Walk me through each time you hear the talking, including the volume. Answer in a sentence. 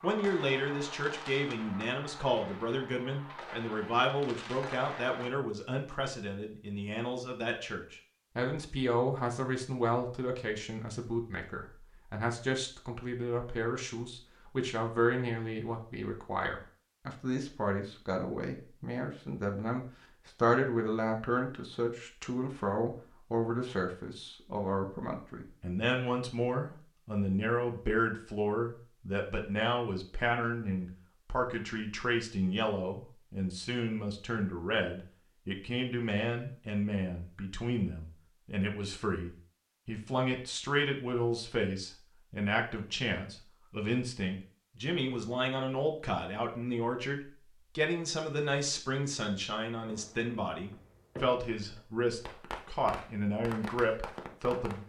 You can hear the talking from 0.0 to 54.8 s, at a steady volume.